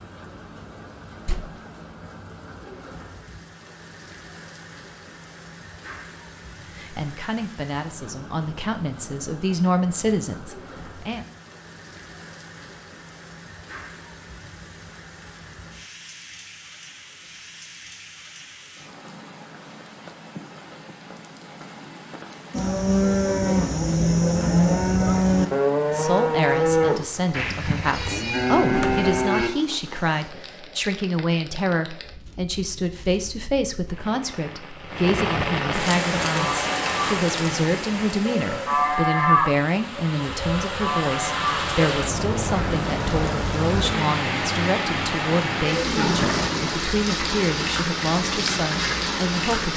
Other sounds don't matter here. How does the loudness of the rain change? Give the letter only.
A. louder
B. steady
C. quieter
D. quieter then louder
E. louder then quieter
A.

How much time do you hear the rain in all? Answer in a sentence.
The rain can be heard for 50 seconds in total.